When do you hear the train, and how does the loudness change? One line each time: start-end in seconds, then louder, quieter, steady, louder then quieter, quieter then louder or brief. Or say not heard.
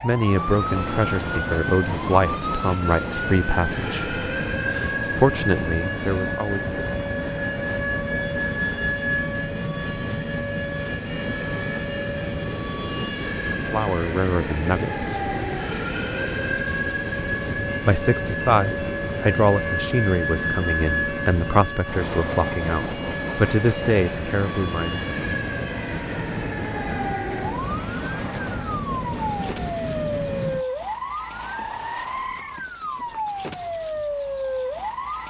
0.0-30.6 steady.